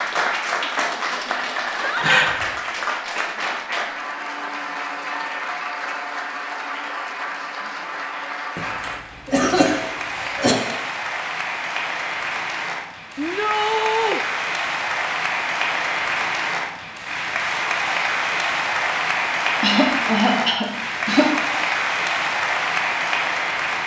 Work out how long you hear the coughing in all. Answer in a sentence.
You can hear the coughing for 4 seconds altogether.